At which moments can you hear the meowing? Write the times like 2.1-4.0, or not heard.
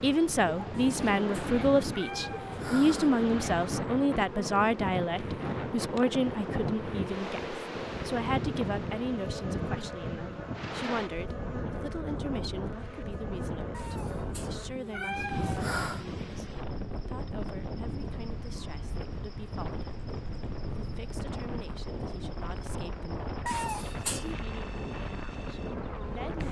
0.7-3.1, 13.7-16.1, 23.4-24.4.